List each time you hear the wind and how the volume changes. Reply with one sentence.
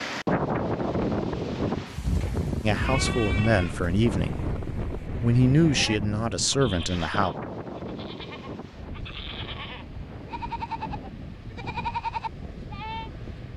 You can hear the wind from 0.0 to 13.5 s, getting quieter.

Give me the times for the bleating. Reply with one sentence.
You can hear the bleating from 2.8 to 13.1 s.